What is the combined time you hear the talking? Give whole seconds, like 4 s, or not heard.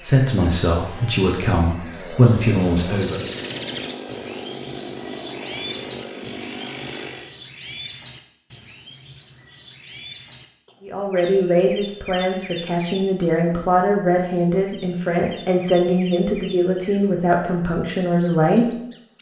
11 s.